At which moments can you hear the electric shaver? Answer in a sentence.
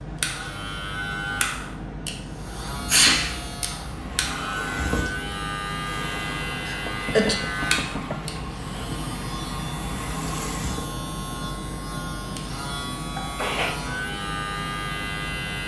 The electric shaver can be heard from 0.0 to 15.6 s.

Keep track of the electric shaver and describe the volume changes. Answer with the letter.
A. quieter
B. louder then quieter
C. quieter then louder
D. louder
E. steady
E.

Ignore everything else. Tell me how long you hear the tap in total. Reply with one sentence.
You can hear the tap for 7 seconds altogether.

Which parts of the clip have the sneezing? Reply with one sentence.
You can hear the sneezing from 2.9 to 3.3 s, from 6.7 to 7.3 s and from 13.2 to 13.8 s.